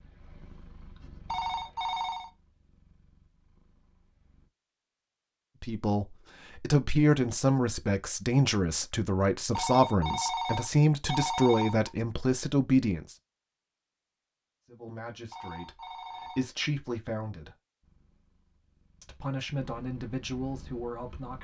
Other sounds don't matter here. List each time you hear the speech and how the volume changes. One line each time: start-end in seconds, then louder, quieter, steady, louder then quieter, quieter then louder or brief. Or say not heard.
5.6-13.2 steady
14.7-17.6 brief
19.0-21.3 brief.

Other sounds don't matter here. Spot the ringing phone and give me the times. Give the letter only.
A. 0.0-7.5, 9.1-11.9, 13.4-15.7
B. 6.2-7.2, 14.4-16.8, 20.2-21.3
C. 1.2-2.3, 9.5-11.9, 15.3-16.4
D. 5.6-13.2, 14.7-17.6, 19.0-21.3
C.